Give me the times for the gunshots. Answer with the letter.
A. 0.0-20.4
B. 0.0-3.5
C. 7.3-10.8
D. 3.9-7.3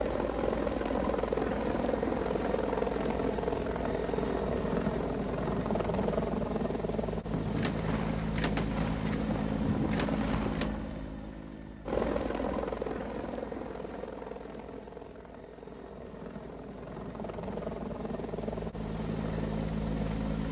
C.